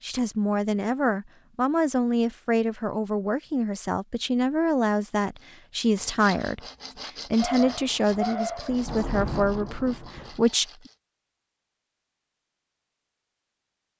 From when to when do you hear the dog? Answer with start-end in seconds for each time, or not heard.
7.3-8.8.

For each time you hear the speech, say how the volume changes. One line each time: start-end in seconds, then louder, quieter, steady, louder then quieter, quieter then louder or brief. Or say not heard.
0.0-10.7 steady.